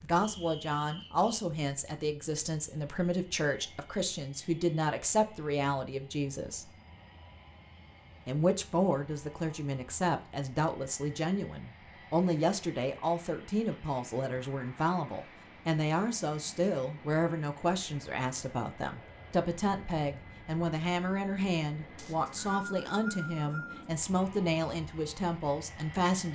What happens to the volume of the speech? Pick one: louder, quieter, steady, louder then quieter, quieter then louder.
steady.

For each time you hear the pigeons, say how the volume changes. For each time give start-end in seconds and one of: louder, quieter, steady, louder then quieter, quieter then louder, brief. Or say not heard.
not heard.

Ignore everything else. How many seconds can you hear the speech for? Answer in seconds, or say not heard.
25 s.